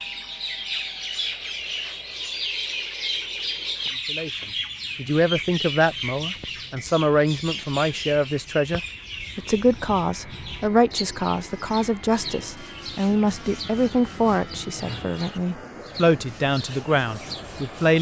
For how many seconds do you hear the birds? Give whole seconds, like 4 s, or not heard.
18 s.